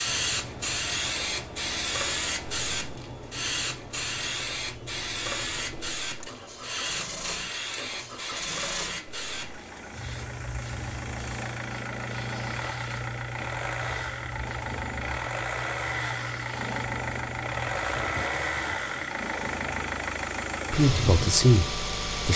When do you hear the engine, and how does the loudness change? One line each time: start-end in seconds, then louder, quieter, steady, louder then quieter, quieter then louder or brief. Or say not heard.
0.0-22.3 louder.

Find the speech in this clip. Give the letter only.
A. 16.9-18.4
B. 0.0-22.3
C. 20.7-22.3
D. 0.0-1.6
C.